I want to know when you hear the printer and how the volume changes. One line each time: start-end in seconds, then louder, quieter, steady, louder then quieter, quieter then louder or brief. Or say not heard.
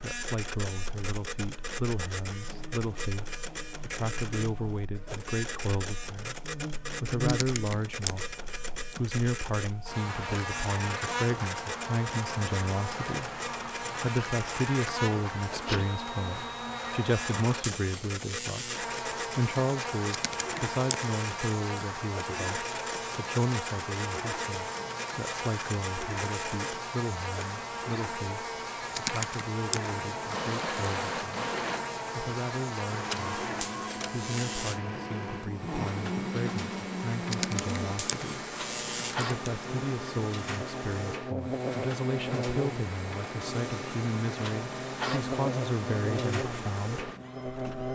0.0-47.9 steady.